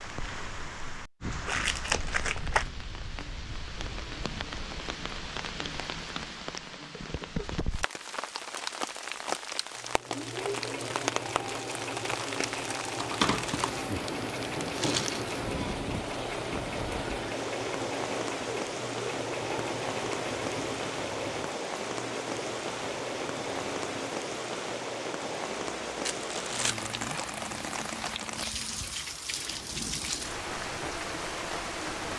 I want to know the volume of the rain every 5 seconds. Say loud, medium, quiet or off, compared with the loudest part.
medium, loud, loud, loud, loud, loud, loud.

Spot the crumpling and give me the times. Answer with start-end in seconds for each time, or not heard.
1.4-2.6, 12.9-15.4, 26.1-26.9.